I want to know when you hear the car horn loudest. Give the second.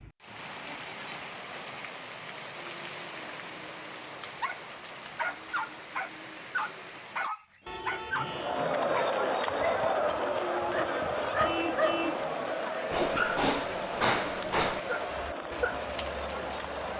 12 s.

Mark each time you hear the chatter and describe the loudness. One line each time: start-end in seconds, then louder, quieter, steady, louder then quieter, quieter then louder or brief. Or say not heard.
8.2-16.9 quieter.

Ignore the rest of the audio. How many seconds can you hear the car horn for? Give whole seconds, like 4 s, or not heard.
3 s.